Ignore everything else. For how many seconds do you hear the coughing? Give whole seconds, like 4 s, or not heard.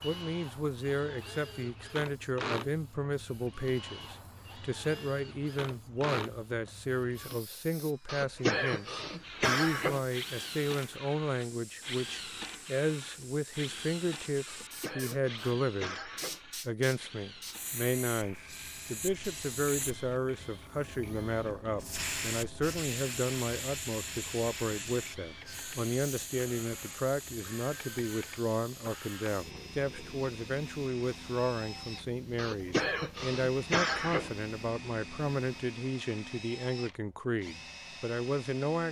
6 s.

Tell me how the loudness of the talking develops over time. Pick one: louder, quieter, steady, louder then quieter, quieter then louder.
steady.